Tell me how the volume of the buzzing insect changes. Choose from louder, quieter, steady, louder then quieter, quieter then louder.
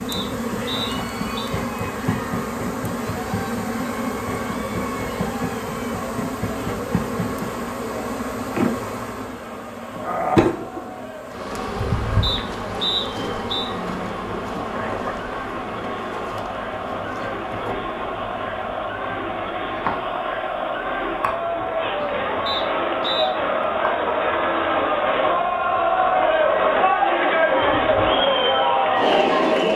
quieter.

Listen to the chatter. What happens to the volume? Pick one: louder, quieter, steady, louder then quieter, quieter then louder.
louder.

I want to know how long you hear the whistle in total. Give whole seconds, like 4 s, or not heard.
4 s.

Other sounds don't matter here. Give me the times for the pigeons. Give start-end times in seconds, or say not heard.
not heard.